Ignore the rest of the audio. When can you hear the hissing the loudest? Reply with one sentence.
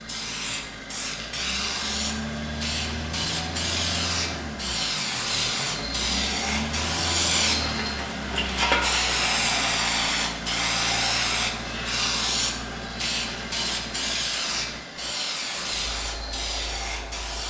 The volume of the hissing peaks at 9 seconds.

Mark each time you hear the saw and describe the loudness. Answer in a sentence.
The saw can't be heard in this clip.